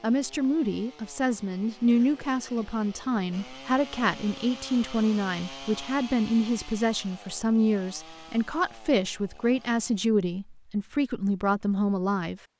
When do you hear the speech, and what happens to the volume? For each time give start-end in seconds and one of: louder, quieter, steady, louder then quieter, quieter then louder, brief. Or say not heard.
0.0-12.4 steady.